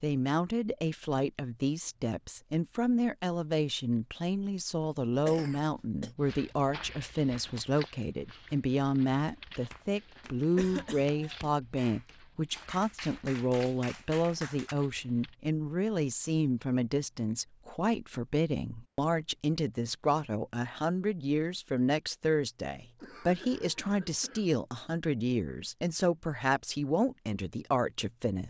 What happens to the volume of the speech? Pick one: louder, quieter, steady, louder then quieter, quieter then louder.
steady.